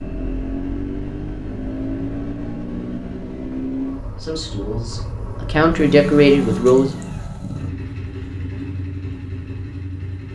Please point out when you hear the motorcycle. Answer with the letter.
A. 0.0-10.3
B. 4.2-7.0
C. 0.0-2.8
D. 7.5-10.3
A.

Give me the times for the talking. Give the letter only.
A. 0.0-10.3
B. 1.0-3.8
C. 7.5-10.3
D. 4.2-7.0
D.